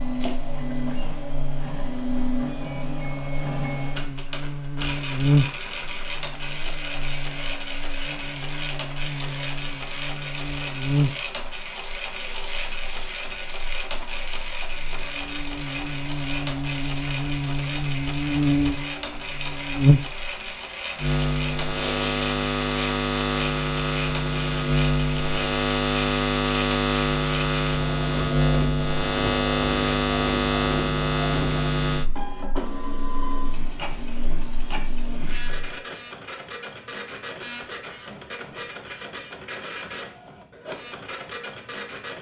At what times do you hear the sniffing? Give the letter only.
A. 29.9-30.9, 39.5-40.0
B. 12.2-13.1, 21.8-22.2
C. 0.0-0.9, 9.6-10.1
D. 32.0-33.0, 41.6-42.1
B.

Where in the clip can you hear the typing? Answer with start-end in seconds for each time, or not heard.
not heard.